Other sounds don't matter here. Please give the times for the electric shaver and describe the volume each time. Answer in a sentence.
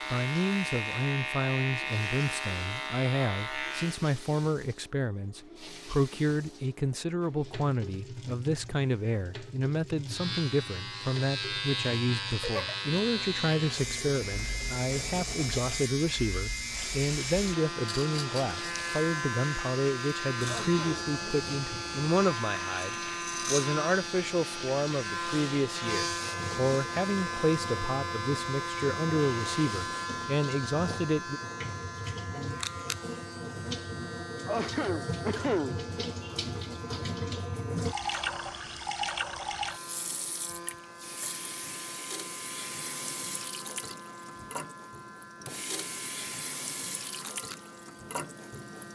You can hear the electric shaver from 0.0 to 4.0 s, at a steady volume; and from 10.1 to 48.9 s, getting quieter.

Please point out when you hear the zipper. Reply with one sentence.
The zipper can't be heard in this clip.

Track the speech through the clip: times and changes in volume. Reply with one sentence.
The speech can be heard from 0.1 to 31.4 s, at a steady volume.